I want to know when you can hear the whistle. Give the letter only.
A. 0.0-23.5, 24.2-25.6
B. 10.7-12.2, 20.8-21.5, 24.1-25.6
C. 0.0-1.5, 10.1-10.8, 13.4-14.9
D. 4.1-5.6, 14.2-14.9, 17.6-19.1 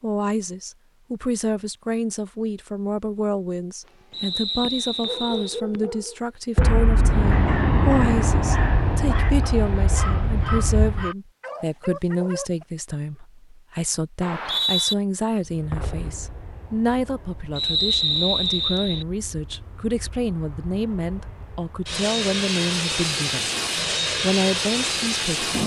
D.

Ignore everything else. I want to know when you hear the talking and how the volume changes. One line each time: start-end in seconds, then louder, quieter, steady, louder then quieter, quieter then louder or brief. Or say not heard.
0.0-23.5 steady
24.2-25.6 brief.